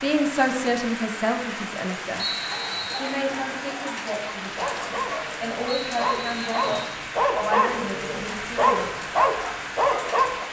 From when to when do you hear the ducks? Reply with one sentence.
The ducks can't be heard in this clip.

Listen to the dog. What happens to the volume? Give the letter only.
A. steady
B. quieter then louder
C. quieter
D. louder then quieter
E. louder
E.